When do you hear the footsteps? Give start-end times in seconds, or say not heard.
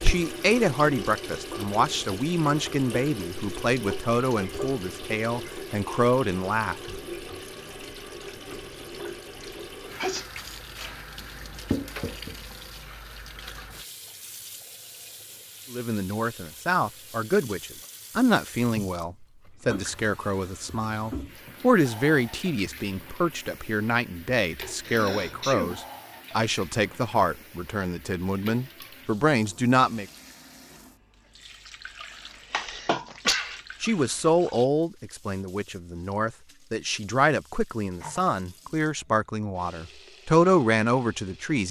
not heard.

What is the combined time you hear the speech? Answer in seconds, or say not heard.
29 s.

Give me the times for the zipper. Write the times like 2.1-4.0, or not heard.
not heard.